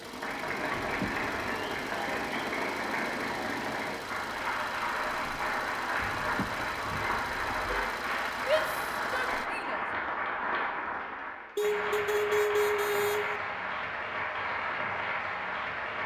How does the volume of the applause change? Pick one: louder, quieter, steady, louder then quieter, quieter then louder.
steady.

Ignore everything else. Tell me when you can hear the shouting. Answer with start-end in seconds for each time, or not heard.
8.3-9.8.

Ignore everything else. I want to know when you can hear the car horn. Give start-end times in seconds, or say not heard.
0.8-1.2, 6.1-7.9, 11.6-13.4.